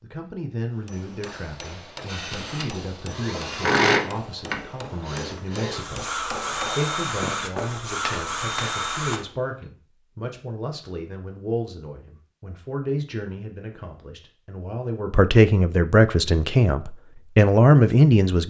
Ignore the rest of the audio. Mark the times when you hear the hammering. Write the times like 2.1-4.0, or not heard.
0.8-9.7.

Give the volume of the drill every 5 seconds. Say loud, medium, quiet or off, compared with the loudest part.
loud, medium, off, off.